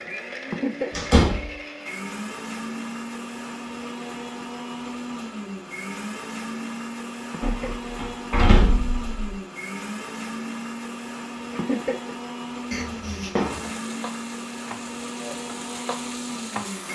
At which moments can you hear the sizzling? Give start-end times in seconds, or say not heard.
13.4-16.8.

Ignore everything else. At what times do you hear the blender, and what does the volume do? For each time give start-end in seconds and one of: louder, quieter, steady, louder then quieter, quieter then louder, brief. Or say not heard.
0.0-16.8 steady.